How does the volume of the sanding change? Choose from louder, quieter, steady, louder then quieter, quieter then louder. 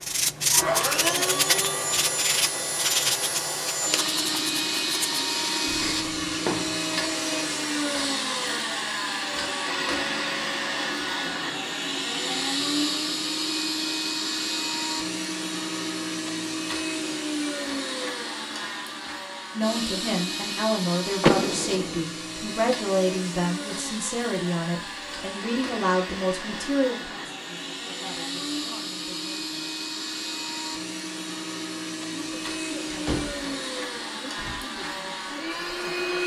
quieter.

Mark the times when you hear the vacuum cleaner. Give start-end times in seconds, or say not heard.
0.0-36.2.